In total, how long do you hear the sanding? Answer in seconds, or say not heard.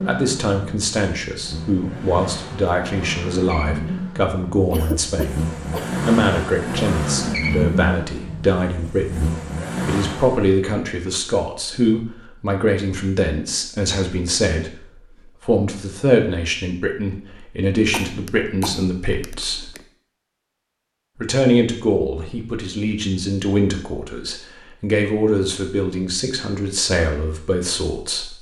not heard.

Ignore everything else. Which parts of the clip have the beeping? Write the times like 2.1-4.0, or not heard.
not heard.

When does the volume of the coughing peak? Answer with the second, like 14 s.
5 s.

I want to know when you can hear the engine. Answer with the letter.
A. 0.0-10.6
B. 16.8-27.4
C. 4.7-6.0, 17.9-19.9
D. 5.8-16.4
A.